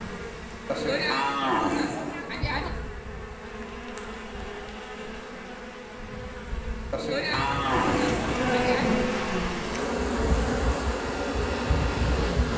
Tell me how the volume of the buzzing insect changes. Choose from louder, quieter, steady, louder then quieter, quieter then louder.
louder.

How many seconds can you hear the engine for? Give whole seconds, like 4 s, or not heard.
5 s.